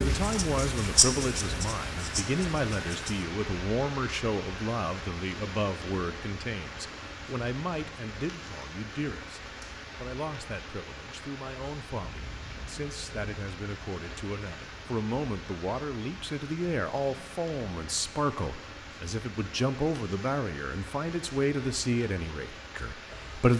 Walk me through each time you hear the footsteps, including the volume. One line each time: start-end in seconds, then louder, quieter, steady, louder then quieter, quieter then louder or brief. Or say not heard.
not heard.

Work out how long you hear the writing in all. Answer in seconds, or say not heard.
3 s.